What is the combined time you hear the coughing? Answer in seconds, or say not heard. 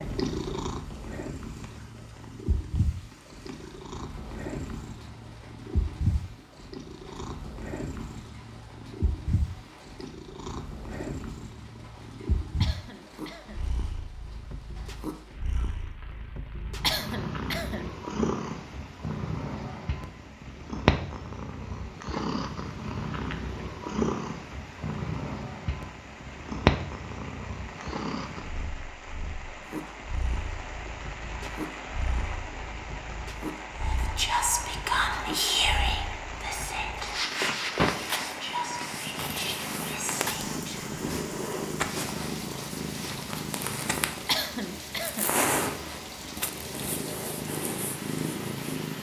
3 s.